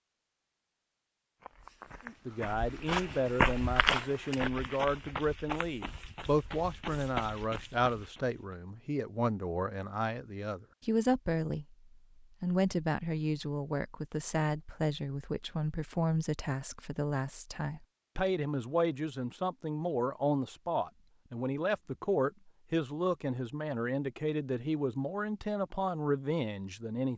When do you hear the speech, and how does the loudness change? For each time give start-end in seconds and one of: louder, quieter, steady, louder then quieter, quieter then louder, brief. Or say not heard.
2.0-27.1 steady.